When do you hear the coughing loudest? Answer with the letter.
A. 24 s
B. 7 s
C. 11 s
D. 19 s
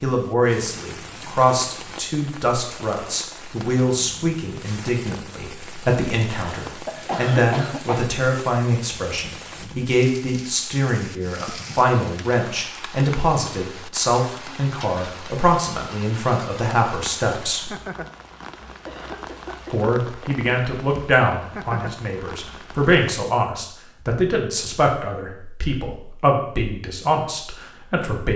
B.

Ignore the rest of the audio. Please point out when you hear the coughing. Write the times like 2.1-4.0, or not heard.
6.2-8.1, 18.4-19.9.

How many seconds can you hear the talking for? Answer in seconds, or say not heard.
26 s.